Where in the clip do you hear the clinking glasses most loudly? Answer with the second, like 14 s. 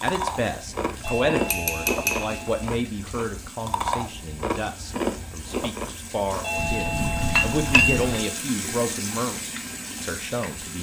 8 s.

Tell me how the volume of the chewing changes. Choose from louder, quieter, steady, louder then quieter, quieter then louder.
steady.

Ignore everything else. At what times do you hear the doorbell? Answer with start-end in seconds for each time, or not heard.
1.0-2.7, 6.4-8.3.